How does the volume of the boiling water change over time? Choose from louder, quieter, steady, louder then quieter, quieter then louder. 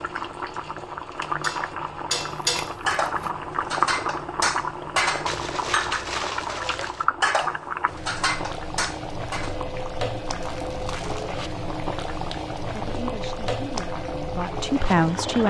steady.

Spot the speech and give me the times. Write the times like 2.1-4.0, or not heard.
12.7-15.4.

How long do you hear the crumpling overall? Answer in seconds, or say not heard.
4 s.